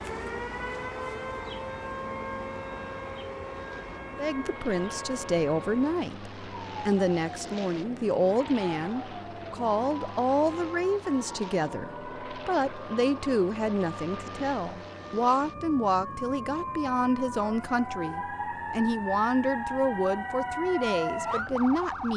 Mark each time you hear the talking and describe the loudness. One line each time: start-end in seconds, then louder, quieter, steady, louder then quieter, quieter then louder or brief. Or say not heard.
4.2-22.1 steady.